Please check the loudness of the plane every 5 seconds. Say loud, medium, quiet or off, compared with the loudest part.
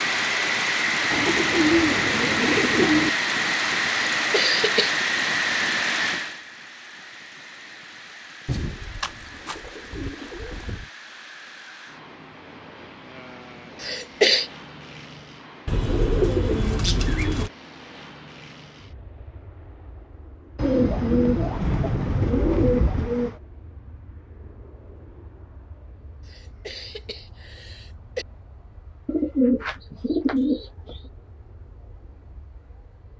loud, medium, quiet, quiet, quiet, quiet, quiet.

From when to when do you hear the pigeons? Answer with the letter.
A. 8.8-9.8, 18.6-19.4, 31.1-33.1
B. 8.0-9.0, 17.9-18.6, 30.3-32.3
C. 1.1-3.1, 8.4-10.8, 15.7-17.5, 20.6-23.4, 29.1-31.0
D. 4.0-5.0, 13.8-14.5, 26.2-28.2
C.